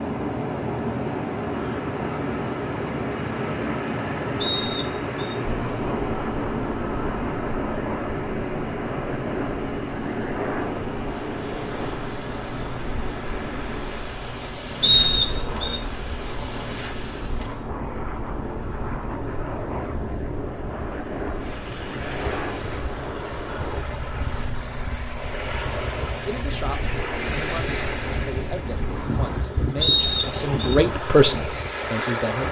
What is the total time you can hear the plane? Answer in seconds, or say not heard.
24 s.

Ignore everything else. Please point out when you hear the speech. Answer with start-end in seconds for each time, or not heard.
26.2-32.4.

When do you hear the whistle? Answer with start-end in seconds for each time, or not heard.
4.4-5.3, 14.8-15.8, 29.8-30.8.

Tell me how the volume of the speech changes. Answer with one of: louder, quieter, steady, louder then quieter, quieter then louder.
louder.